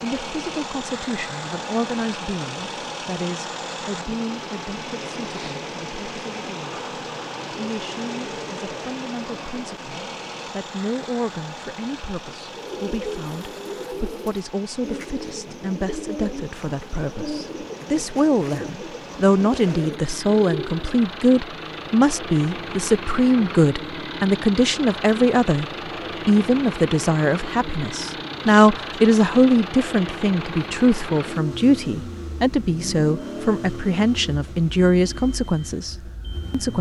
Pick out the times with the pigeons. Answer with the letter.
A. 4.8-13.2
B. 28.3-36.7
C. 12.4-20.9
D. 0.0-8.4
C.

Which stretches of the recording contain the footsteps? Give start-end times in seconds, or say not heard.
not heard.